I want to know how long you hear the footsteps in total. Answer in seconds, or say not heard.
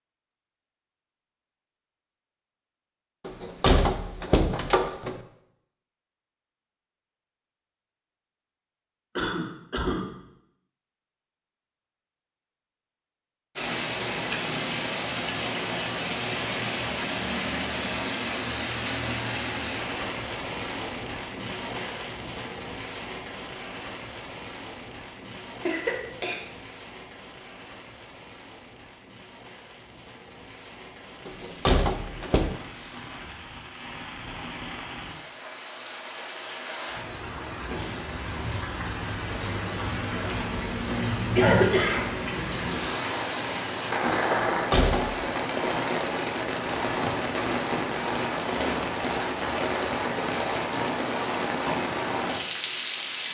not heard.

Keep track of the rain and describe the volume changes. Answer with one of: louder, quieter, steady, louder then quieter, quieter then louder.
quieter then louder.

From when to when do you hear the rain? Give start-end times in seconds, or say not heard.
13.6-53.2.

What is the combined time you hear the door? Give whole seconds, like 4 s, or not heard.
4 s.